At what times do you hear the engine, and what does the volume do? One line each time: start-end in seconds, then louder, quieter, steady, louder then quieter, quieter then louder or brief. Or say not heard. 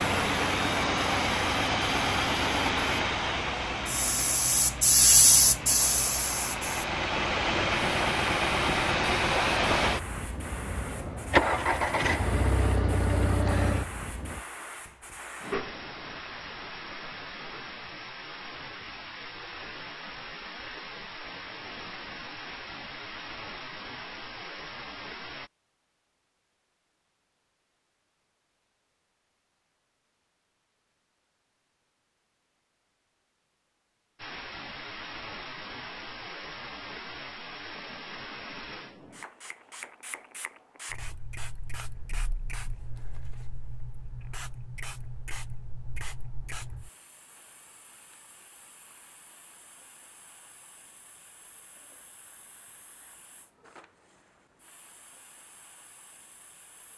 0.0-14.4 quieter then louder.